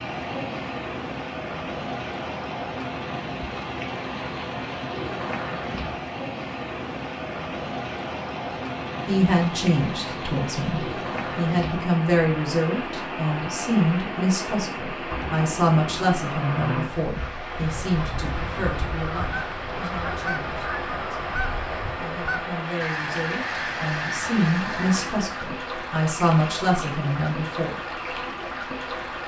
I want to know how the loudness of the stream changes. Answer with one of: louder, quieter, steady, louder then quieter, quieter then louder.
steady.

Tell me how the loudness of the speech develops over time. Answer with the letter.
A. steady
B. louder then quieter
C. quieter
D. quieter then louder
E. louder
D.